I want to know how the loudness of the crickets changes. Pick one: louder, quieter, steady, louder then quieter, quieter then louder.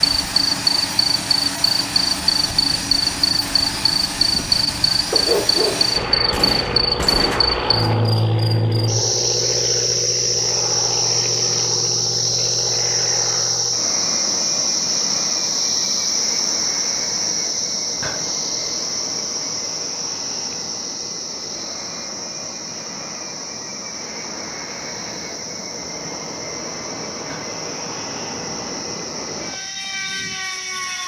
quieter.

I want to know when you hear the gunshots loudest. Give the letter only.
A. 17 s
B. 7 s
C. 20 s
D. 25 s
B.